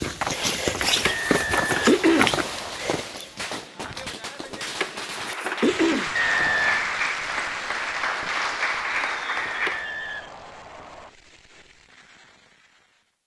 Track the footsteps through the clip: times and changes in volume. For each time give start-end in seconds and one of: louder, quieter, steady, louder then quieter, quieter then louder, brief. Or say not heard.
0.0-5.0 quieter.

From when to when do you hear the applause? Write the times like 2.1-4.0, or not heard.
5.0-9.9.